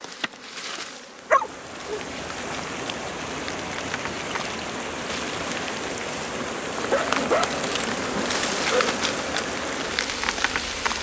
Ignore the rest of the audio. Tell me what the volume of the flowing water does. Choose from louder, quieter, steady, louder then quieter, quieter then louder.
steady.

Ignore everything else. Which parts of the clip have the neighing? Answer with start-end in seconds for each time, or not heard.
not heard.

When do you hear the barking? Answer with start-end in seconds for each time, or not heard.
1.3-2.0, 6.9-8.9.